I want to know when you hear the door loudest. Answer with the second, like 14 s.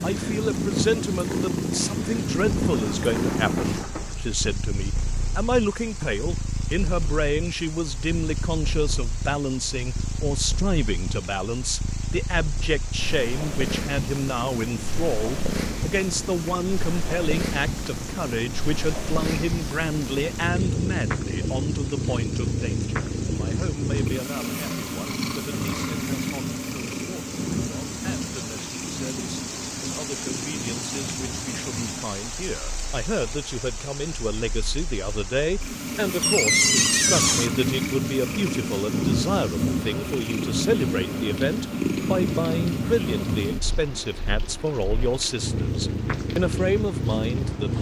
37 s.